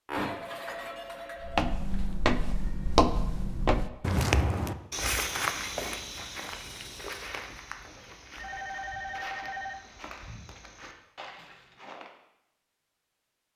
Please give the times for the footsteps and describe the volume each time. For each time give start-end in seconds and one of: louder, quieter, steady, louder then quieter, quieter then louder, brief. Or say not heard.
1.4-12.1 quieter.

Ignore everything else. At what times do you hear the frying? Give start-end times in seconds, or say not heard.
not heard.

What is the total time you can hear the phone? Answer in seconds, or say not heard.
3 s.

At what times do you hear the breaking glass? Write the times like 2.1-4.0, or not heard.
0.1-1.6.